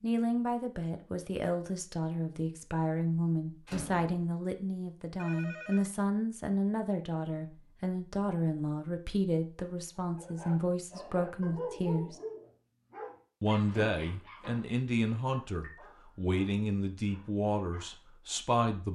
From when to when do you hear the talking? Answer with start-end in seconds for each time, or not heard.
0.0-12.2, 13.4-18.8.